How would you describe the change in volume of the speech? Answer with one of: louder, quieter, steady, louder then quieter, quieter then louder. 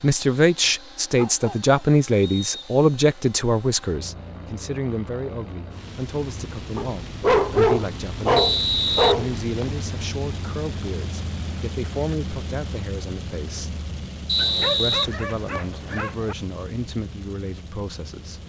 quieter.